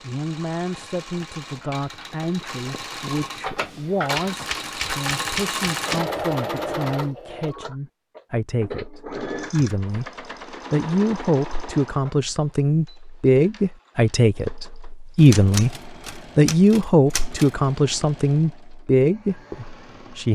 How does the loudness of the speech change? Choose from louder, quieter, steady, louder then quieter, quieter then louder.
louder.